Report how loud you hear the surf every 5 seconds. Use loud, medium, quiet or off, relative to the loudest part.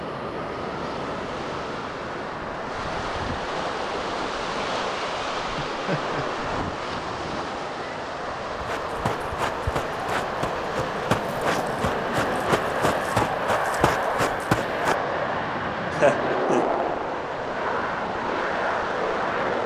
loud, loud, medium, medium.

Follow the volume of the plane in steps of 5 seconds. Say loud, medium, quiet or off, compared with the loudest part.
medium, medium, loud, loud.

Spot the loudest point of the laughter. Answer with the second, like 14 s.
16 s.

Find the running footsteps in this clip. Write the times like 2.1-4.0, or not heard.
8.6-14.9.